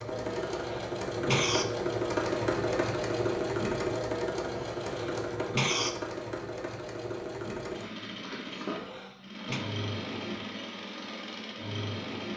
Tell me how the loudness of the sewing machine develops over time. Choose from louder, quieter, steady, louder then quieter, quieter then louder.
quieter.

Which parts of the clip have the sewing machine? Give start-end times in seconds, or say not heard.
0.0-12.3.